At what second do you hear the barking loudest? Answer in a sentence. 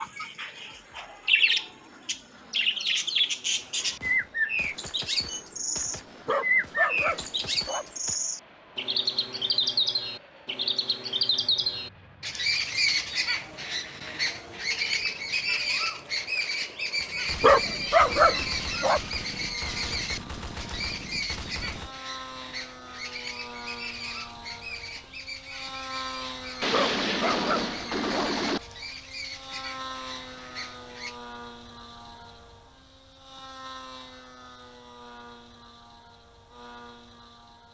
The loudest moment of the barking is at 18 seconds.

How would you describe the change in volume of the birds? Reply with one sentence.
The loudness of the birds goes down.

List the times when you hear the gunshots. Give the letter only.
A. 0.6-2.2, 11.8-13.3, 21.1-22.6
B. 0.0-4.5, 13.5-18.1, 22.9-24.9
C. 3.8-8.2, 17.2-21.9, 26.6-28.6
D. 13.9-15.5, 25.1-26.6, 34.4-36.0
C.